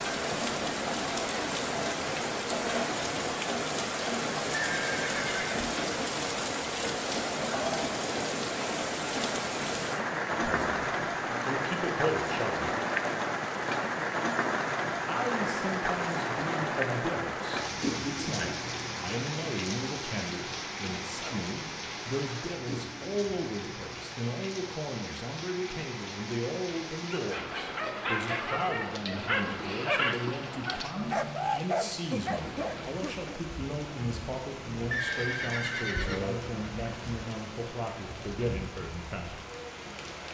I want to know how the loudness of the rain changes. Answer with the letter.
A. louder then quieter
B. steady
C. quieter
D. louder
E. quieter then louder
C.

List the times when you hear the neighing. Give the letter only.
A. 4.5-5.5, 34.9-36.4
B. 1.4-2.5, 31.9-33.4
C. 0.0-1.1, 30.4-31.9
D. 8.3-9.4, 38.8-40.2
A.